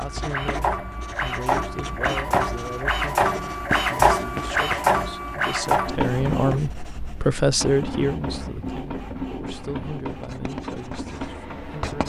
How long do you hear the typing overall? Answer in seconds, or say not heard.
not heard.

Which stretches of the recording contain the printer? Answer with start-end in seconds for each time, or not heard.
0.0-12.0.